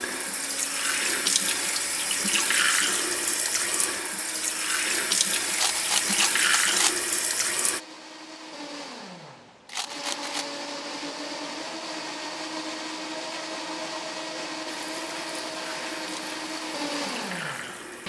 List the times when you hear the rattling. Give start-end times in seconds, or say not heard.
5.5-7.0, 9.7-10.6.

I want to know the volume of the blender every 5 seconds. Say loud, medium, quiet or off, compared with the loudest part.
medium, medium, loud, loud.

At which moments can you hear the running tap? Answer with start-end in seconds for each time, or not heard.
0.0-7.8, 14.7-18.0.